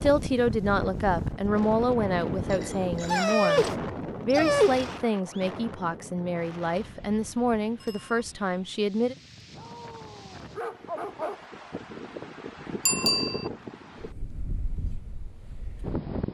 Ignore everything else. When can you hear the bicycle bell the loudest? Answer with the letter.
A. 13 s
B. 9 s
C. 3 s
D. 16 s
A.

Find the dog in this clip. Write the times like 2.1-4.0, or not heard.
3.0-5.0, 9.6-11.4.